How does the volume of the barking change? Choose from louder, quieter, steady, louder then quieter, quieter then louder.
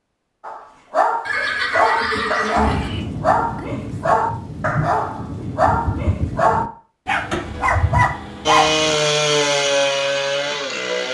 steady.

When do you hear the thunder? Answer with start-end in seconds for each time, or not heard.
2.6-6.7.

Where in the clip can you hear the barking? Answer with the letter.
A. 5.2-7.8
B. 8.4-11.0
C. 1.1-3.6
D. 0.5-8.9
D.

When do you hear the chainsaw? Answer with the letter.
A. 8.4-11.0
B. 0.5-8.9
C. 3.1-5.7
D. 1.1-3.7
A.